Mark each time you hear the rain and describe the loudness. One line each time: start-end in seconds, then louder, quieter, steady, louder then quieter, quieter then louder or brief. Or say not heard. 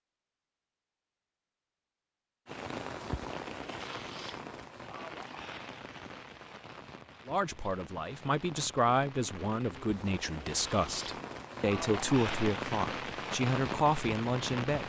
2.5-14.8 quieter then louder.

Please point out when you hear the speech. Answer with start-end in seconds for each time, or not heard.
7.2-14.8.